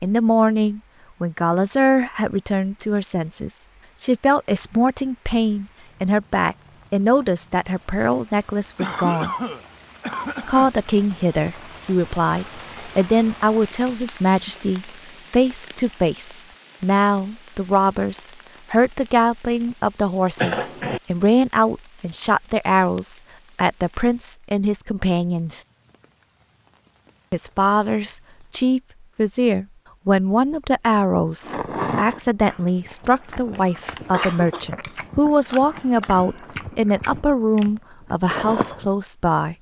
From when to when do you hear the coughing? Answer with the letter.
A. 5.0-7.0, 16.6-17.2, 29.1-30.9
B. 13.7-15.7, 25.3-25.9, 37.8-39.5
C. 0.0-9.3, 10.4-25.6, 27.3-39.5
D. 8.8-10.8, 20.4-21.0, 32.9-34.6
D.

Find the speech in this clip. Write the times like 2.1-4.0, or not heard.
0.0-9.3, 10.4-25.6, 27.3-39.5.